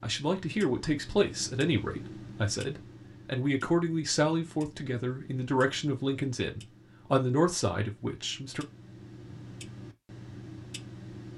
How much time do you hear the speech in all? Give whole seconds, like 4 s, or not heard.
9 s.